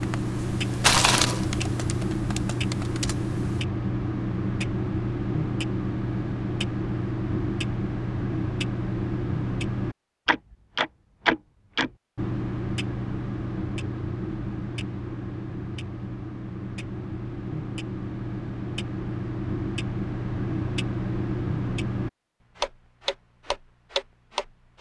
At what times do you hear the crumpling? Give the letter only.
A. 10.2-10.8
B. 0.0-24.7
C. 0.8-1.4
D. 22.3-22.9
C.